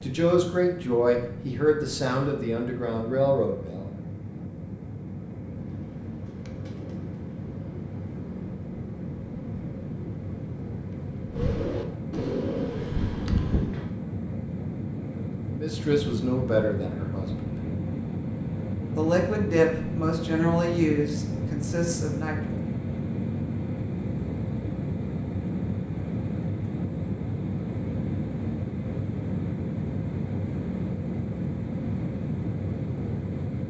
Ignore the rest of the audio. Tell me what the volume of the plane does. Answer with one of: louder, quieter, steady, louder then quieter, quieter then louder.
louder.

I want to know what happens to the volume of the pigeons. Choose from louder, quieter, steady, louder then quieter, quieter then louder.
louder.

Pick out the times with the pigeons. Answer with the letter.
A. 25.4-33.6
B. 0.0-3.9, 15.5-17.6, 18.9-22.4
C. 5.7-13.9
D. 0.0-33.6
C.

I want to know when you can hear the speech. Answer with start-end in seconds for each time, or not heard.
0.0-3.9, 15.5-17.6, 18.9-22.4.